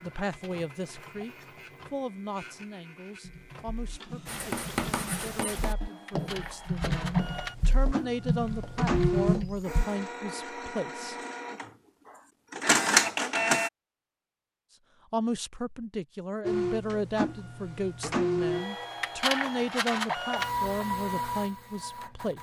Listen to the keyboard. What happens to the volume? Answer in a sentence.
The volume of the keyboard goes up.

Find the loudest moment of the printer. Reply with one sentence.
The loudest moment of the printer is at 13 seconds.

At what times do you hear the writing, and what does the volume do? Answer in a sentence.
You can hear the writing from 4.2 to 9.4 s, getting quieter.